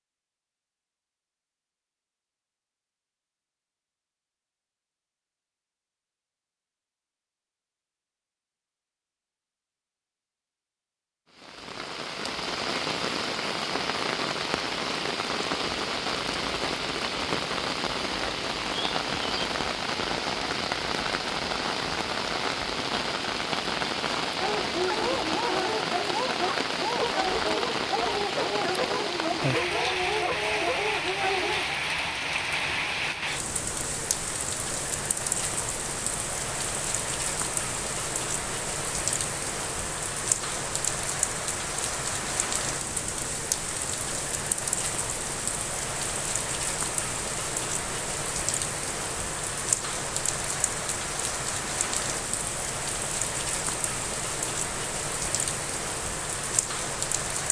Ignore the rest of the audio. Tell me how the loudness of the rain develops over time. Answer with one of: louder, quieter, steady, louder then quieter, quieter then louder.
steady.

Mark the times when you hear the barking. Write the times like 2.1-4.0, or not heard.
24.4-31.8.